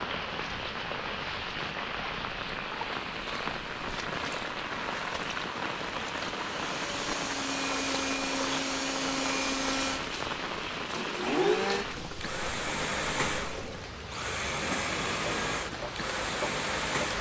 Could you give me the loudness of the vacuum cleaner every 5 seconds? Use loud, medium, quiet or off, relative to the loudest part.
off, loud, loud, loud.